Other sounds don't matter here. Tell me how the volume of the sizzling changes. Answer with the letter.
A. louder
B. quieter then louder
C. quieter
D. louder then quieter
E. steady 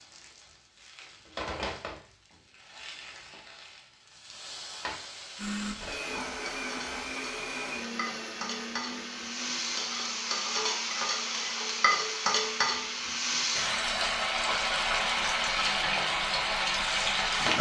A.